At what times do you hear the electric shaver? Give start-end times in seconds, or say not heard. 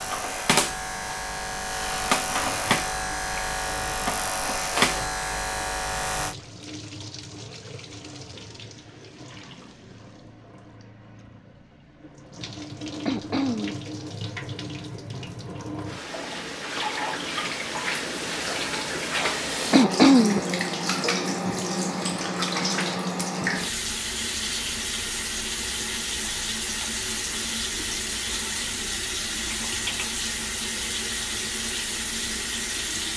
0.0-6.3.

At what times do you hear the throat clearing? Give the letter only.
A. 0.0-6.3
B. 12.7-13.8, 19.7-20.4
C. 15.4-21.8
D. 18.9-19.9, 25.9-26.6
B.